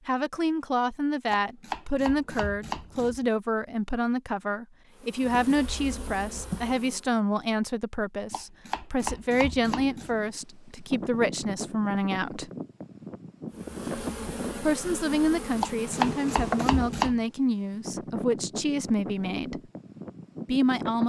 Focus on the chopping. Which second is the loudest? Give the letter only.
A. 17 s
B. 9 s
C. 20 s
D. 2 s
A.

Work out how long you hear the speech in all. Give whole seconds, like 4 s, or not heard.
18 s.